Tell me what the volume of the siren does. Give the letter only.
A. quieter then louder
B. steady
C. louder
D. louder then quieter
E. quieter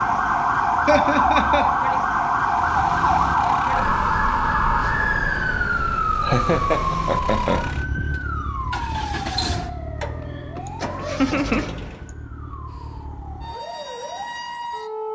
E.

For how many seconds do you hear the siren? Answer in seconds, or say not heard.
15 s.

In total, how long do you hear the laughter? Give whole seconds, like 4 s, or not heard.
3 s.